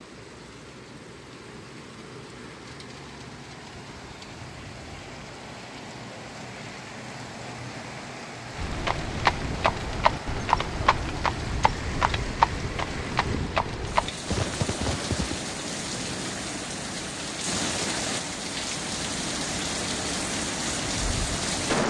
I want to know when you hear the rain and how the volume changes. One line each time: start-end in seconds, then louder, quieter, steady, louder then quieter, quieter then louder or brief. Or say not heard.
0.0-21.8 louder.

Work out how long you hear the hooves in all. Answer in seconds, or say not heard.
7 s.